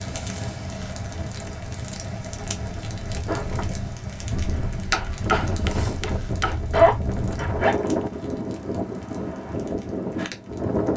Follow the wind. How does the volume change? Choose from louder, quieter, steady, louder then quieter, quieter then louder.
louder.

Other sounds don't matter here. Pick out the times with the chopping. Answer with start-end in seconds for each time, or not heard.
4.9-6.6.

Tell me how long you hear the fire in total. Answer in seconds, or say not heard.
11 s.